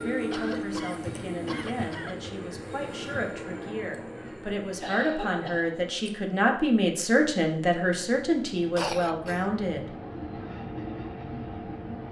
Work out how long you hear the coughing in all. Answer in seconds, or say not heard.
4 s.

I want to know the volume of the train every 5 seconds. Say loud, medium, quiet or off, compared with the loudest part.
loud, medium, loud.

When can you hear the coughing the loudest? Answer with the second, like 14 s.
9 s.